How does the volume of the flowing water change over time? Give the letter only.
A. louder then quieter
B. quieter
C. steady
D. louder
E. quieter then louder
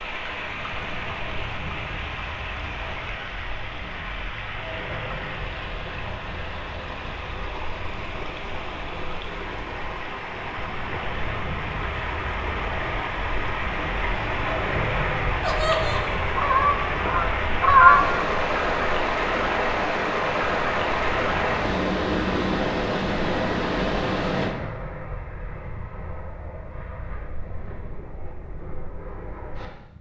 D.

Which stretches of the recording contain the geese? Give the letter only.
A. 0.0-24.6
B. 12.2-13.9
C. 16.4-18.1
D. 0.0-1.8
C.